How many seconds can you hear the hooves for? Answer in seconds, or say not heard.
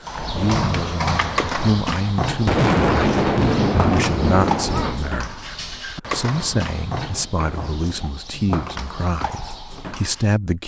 10 s.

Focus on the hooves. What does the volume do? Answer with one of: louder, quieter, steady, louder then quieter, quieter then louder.
quieter.